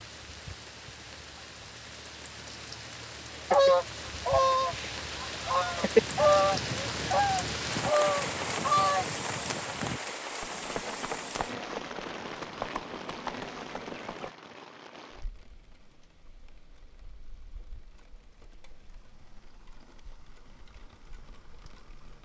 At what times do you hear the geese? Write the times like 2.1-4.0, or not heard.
3.5-9.1.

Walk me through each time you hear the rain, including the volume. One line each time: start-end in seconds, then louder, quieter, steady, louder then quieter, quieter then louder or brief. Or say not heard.
0.0-22.1 louder then quieter.